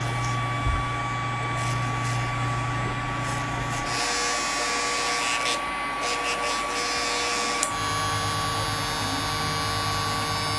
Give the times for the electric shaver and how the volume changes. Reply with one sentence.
The electric shaver can be heard from 0.0 to 10.5 s, at a steady volume.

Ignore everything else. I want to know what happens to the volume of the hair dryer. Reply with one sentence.
The volume of the hair dryer stays about the same.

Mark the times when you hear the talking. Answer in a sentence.
The talking can't be heard in this clip.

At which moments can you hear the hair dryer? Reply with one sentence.
The hair dryer can be heard from 0.0 to 10.5 s.